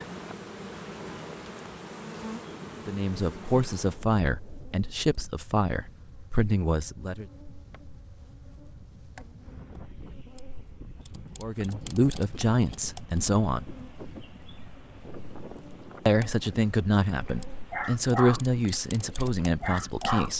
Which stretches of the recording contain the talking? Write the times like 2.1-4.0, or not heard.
2.9-7.2, 11.4-13.7, 16.1-20.3.